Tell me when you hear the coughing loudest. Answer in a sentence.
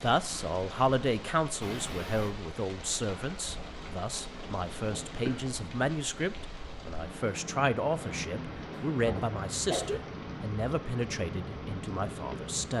The volume of the coughing peaks at 10 seconds.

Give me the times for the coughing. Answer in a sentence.
You can hear the coughing from 1.6 to 2.4 s, from 5.2 to 5.8 s and from 8.7 to 10.0 s.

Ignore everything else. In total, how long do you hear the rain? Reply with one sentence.
You can hear the rain for 13 seconds altogether.